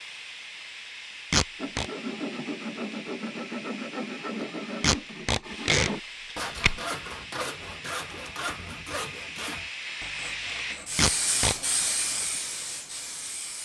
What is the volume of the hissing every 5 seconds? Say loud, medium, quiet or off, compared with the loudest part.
medium, medium, loud.